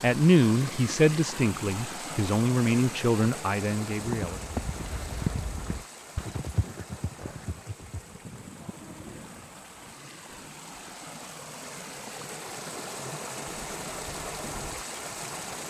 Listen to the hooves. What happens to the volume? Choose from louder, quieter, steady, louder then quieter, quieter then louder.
quieter.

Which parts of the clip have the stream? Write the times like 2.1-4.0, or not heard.
0.0-15.6.